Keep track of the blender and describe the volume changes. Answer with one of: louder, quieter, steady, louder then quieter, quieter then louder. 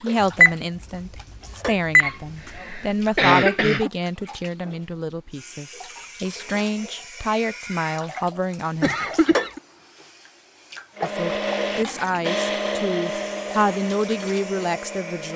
quieter.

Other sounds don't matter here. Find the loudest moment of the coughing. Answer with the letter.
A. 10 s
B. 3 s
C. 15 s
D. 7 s
B.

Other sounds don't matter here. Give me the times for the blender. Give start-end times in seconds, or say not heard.
10.9-15.3.